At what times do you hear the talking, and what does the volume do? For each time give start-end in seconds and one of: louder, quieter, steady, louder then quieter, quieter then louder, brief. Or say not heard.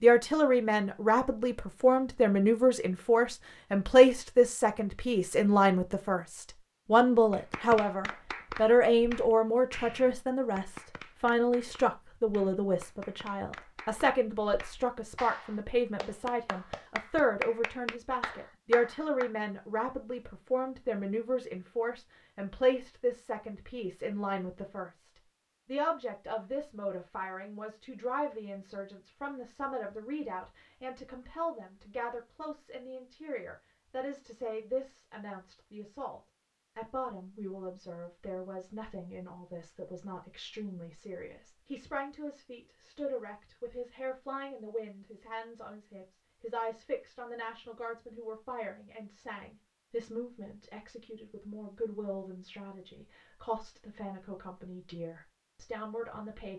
0.0-56.5 quieter.